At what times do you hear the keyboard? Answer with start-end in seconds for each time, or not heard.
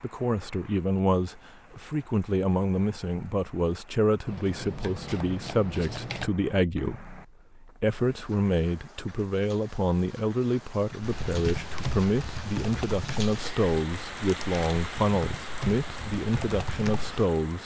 11.0-17.2.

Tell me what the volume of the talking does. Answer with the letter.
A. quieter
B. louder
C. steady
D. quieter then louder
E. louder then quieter
C.